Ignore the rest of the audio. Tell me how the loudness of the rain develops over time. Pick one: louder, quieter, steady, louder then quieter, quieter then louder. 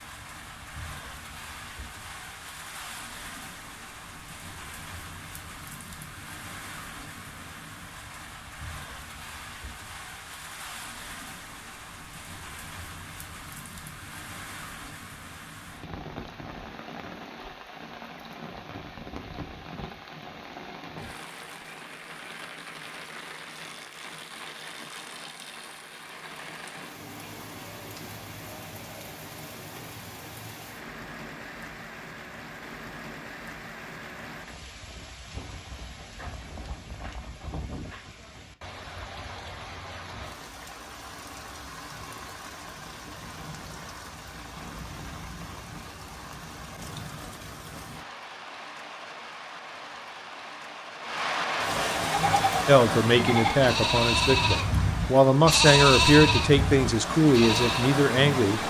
louder.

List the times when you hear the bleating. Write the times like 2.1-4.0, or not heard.
52.0-58.0.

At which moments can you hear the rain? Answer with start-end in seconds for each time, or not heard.
0.0-58.6.